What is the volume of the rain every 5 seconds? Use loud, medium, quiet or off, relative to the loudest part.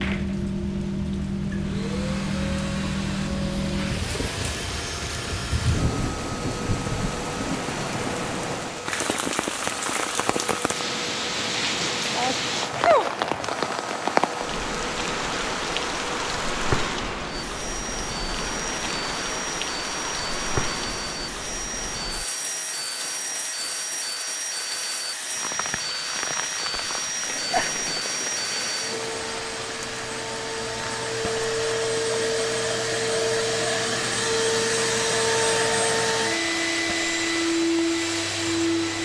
loud, loud, loud, loud, medium, medium, medium, quiet.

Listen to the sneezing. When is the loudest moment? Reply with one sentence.
The loudest moment of the sneezing is at 13 seconds.